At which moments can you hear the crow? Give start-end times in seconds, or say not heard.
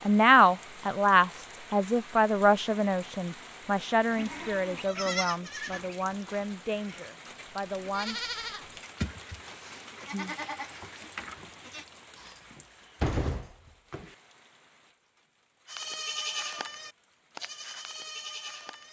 not heard.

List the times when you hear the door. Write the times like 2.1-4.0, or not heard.
12.2-14.2.